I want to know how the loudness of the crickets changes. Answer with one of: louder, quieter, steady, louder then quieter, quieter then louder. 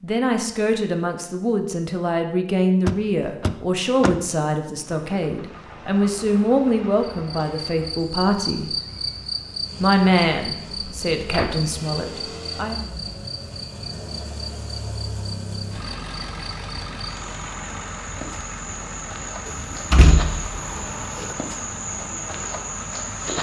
quieter then louder.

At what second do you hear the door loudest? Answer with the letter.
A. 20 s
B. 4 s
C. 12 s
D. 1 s
A.